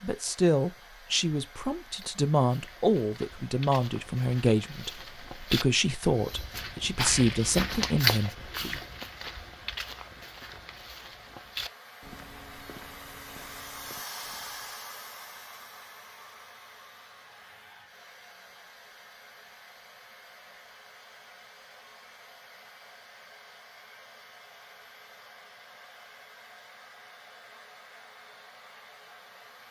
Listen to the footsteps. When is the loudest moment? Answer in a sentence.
The loudest moment of the footsteps is at 8 seconds.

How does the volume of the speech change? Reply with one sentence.
The volume of the speech stays about the same.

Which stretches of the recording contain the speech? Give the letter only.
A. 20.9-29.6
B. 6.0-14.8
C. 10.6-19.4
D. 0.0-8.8
D.